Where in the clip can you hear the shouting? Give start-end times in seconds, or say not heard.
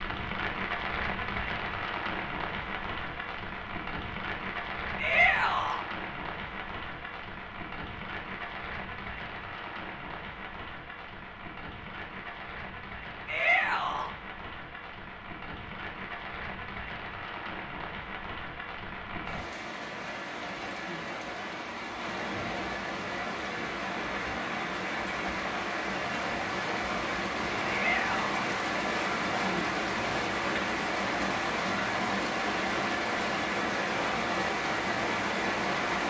5.0-5.8, 13.2-14.1, 27.6-28.4.